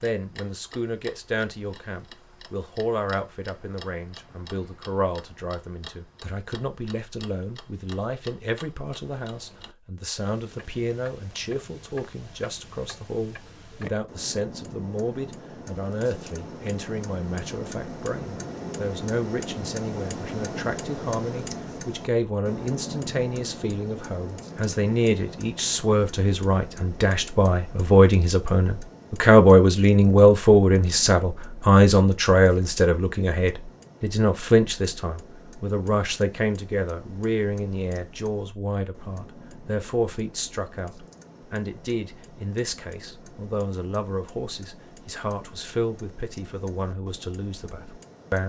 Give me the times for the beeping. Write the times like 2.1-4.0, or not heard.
not heard.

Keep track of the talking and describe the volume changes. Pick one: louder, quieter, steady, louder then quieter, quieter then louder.
louder then quieter.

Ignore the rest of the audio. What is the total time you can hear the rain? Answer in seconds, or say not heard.
not heard.